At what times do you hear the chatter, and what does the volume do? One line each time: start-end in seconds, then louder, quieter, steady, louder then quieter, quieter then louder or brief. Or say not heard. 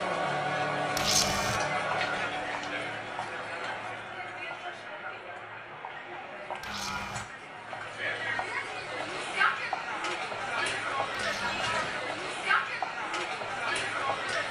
0.0-14.4 quieter then louder.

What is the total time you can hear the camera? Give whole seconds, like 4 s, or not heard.
2 s.